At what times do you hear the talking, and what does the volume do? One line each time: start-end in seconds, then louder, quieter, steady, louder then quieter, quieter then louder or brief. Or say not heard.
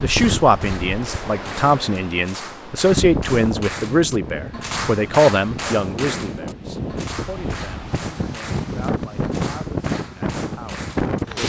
0.0-11.4 quieter.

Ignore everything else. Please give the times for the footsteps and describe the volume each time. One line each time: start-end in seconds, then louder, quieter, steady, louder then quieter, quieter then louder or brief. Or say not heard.
not heard.